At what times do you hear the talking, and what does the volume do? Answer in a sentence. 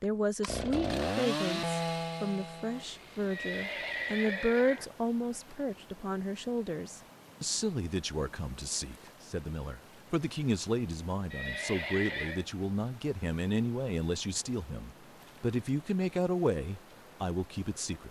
The talking can be heard from 0.0 to 18.0 s, at a steady volume.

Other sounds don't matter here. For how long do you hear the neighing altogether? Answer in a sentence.
You can hear the neighing for 3 seconds altogether.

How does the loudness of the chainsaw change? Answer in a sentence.
The loudness of the chainsaw goes down.